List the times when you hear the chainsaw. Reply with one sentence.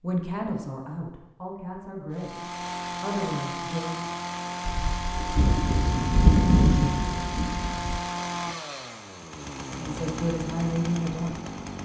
The chainsaw can be heard from 2.1 to 11.8 s.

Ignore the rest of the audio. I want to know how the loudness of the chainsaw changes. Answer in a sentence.
The loudness of the chainsaw stays about the same.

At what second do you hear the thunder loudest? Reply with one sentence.
The volume of the thunder peaks at 6 seconds.